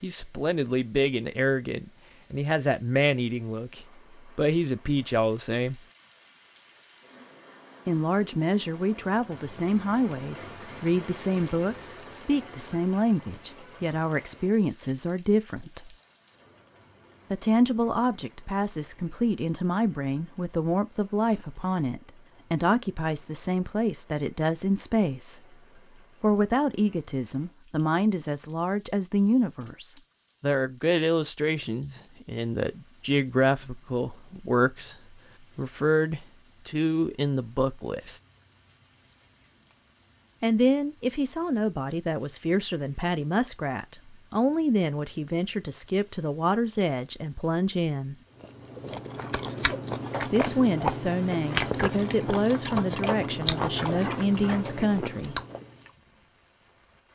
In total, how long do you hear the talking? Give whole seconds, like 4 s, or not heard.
47 s.